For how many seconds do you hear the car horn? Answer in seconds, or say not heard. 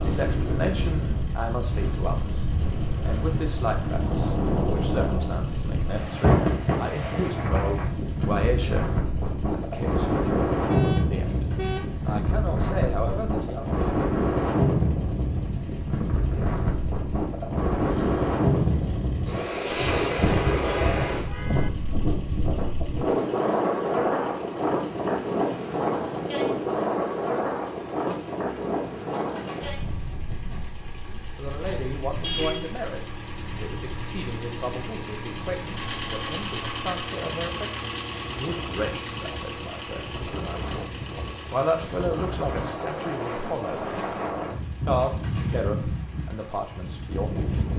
4 s.